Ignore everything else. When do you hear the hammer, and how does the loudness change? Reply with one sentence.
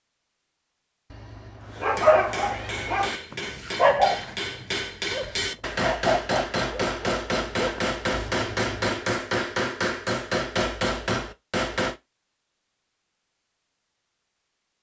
The hammer can be heard from 1.7 to 11.9 s, getting louder.